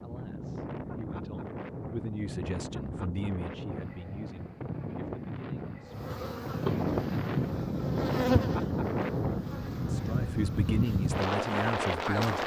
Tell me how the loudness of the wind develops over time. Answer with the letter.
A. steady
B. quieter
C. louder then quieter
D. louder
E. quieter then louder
D.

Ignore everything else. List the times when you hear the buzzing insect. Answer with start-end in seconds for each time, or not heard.
5.9-12.4.